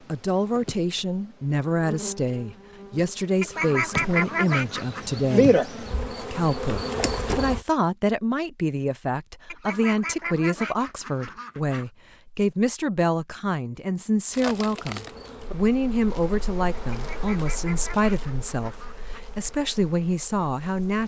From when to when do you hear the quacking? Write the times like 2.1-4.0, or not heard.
3.4-5.2, 9.4-11.8, 16.9-19.2.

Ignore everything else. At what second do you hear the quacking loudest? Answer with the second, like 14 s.
4 s.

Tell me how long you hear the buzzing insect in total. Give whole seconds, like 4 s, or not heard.
14 s.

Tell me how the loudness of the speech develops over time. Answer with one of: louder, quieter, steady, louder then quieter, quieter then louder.
steady.